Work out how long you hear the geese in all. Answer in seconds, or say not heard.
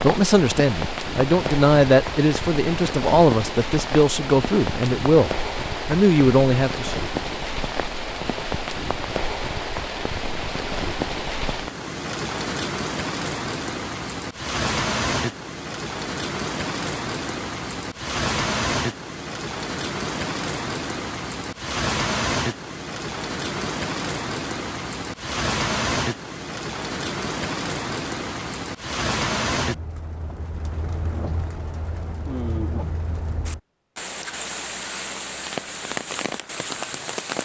not heard.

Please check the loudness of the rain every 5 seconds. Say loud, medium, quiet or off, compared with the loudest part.
loud, loud, loud, loud, loud, loud, medium, loud.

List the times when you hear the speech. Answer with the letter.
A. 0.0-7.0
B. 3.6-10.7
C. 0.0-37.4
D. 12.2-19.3
A.